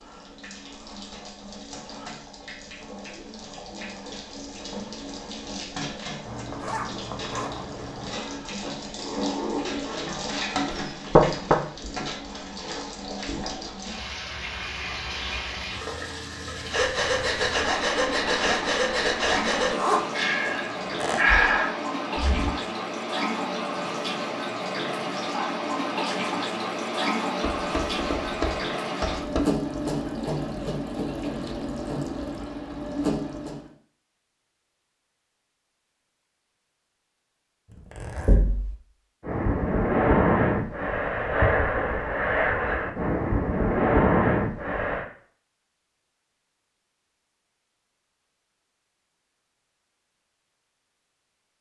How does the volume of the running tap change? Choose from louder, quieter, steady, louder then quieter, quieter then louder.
louder.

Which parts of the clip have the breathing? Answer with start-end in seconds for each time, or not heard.
16.7-22.6, 39.2-45.0.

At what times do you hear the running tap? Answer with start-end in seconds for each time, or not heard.
0.0-33.7.